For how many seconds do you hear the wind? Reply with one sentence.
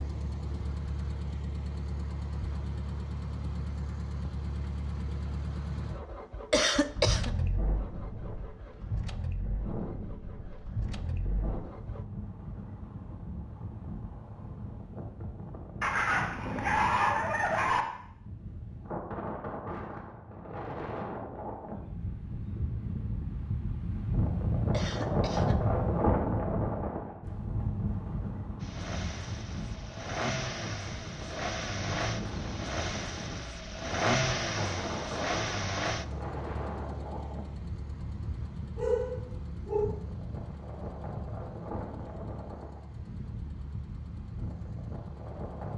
The wind can be heard for 38 seconds in total.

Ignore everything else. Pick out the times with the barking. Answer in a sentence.
The barking can be heard from 15.8 to 17.9 s and from 38.8 to 39.9 s.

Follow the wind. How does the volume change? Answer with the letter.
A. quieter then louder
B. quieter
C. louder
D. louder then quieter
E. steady
D.